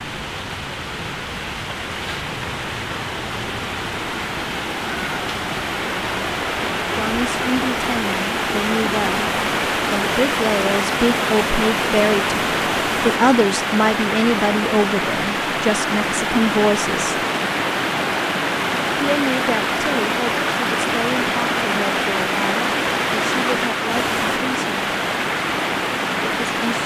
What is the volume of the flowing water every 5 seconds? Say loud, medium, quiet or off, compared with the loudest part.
medium, loud, loud, loud, loud, loud.